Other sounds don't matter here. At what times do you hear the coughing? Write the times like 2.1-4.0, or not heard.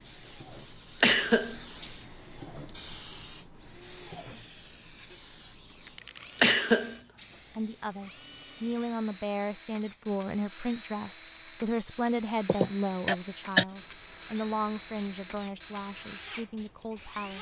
1.0-1.9, 6.4-7.0, 12.4-13.7.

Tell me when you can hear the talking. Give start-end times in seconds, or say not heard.
7.3-17.3.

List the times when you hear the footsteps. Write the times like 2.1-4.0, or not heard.
not heard.